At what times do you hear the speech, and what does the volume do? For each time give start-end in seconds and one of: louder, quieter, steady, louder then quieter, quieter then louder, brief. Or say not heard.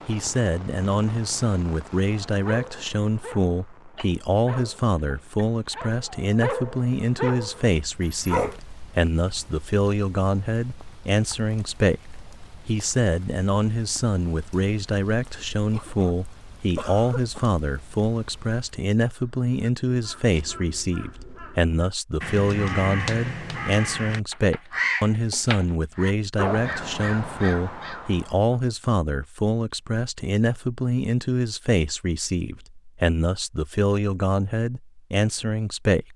0.1-36.1 steady.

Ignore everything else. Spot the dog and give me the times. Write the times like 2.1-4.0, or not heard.
2.2-8.6.